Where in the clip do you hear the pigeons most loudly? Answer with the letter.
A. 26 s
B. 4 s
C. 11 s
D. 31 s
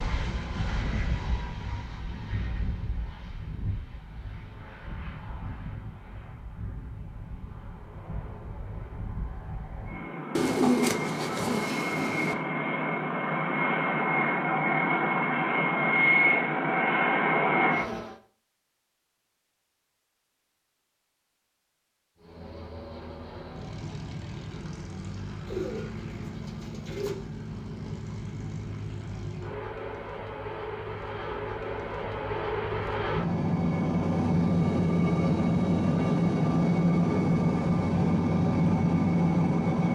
C.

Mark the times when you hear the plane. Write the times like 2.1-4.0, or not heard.
0.0-18.1, 22.1-39.8.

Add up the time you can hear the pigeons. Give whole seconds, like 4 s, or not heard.
4 s.